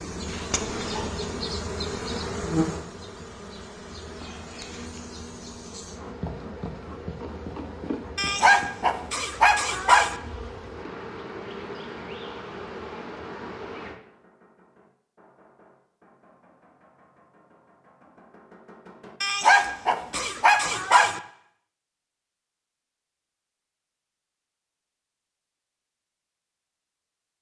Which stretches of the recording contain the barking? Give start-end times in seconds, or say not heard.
8.2-10.2, 19.2-21.2.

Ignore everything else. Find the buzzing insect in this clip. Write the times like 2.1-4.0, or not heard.
0.0-14.0.